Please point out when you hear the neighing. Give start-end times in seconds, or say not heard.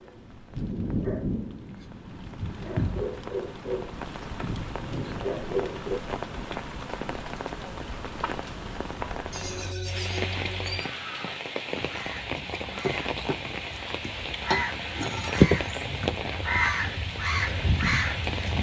9.3-10.8.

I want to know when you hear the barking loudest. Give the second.
5 s.